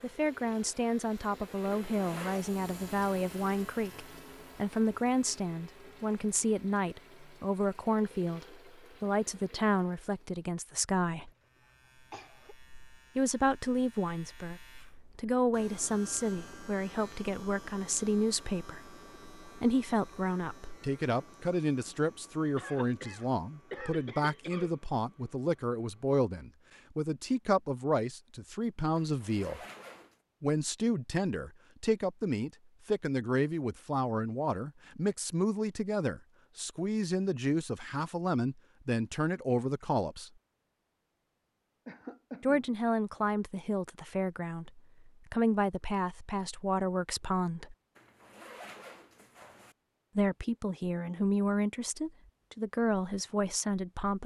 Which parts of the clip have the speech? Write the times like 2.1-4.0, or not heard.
0.0-11.3, 13.2-29.6, 30.4-40.3, 42.4-47.8, 50.1-54.2.